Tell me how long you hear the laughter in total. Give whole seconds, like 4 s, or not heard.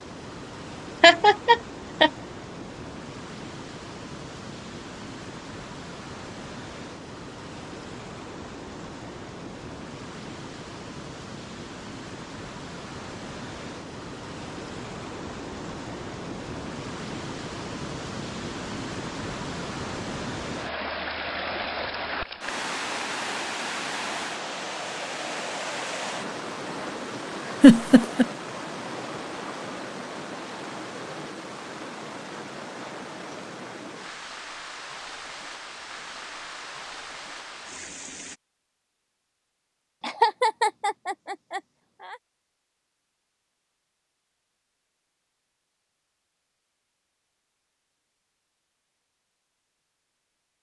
4 s.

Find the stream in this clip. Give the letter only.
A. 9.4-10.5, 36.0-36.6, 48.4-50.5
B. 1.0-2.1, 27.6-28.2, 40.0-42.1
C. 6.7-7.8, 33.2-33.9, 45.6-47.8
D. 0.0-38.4
D.